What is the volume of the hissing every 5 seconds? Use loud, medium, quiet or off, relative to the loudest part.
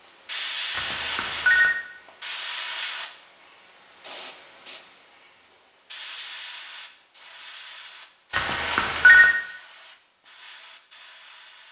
loud, medium, quiet.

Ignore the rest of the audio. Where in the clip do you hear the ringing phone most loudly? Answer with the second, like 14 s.
9 s.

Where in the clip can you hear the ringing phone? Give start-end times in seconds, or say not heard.
0.8-1.8, 8.3-9.3.